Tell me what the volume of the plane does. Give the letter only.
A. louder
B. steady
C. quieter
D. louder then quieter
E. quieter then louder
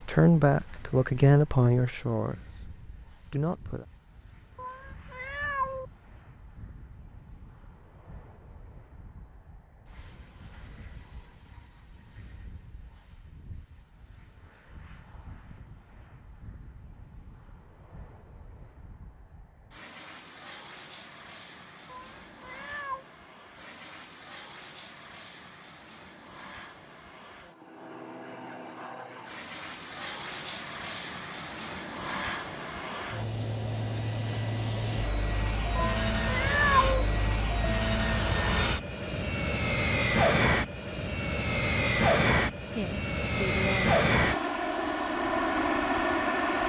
A.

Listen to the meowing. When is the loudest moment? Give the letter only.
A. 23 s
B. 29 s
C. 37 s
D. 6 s
C.